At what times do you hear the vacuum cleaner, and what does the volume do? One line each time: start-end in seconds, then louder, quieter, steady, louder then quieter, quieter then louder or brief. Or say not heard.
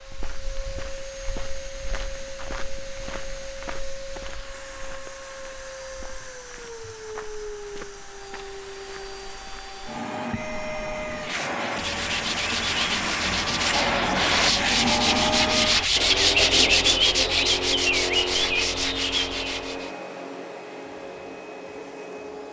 0.0-22.4 louder then quieter.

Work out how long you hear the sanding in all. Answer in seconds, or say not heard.
9 s.